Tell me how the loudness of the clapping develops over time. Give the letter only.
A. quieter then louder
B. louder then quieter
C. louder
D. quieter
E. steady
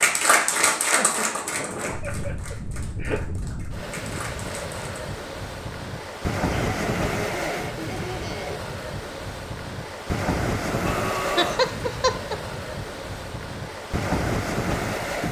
A.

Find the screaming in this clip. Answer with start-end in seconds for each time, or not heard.
10.7-11.7.